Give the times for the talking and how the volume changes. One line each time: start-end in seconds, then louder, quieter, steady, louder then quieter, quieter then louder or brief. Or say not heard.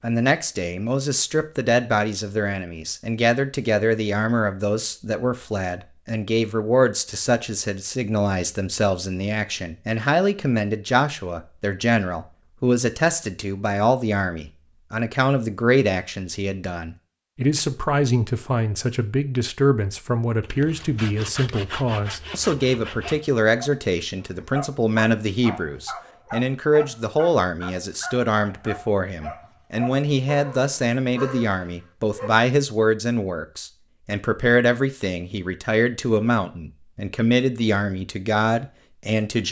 0.0-39.4 steady.